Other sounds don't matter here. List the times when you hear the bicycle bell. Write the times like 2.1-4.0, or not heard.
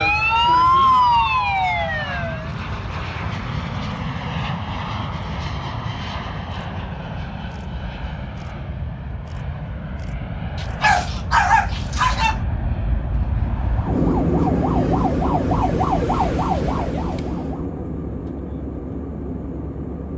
not heard.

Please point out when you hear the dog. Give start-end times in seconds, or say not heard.
10.6-12.4.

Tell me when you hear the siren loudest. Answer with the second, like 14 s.
1 s.